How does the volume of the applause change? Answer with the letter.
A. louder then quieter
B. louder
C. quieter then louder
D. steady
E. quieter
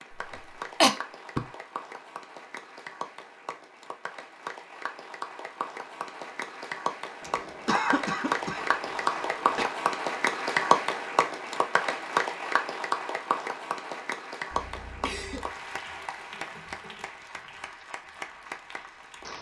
A.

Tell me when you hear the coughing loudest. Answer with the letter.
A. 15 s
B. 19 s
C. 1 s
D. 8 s
C.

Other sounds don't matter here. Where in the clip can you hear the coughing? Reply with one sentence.
The coughing can be heard from 0.3 to 1.4 s, from 7.2 to 9.7 s and from 14.5 to 15.5 s.